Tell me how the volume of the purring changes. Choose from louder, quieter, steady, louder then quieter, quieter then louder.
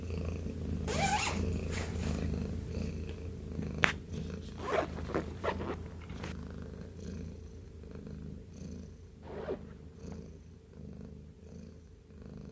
quieter.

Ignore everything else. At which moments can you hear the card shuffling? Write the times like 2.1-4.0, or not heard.
not heard.